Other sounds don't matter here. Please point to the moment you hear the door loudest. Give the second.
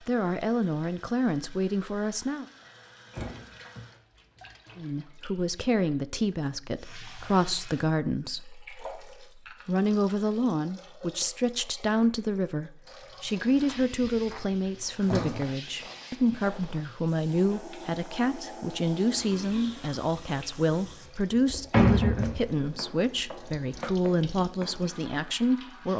22 s.